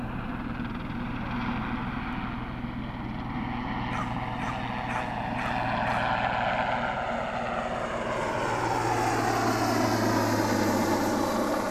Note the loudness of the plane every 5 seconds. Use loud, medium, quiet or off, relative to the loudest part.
medium, loud, loud.